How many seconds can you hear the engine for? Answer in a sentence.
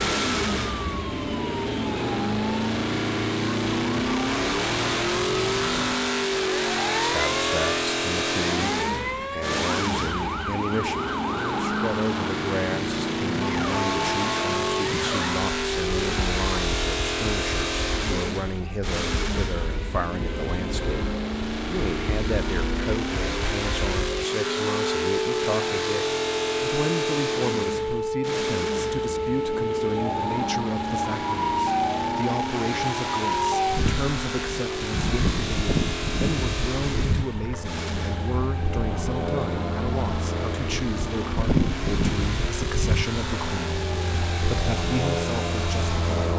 The engine can be heard for 46 seconds in total.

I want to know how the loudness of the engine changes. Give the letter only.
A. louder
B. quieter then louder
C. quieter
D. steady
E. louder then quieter
C.